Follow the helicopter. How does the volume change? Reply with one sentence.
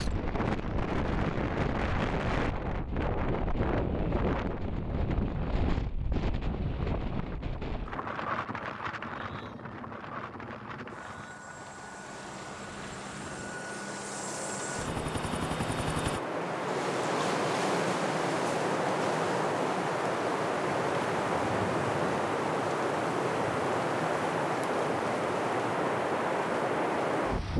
The loudness of the helicopter goes up.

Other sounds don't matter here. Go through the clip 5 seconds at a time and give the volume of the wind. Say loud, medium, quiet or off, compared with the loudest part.
loud, medium, quiet, loud, loud, loud.